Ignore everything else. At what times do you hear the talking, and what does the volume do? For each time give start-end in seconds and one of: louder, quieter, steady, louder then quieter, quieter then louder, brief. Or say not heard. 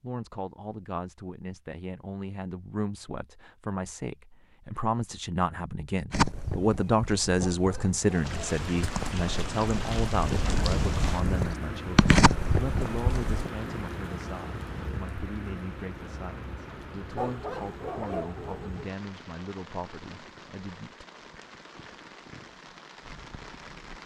0.0-21.1 louder then quieter.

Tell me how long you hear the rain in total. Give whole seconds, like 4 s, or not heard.
16 s.